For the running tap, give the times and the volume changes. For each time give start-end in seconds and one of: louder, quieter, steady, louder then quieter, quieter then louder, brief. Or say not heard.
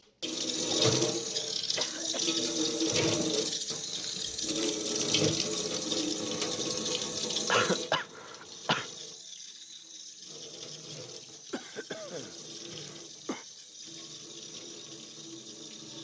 0.2-15.9 quieter.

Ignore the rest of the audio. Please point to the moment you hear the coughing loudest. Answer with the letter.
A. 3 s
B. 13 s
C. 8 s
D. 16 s
C.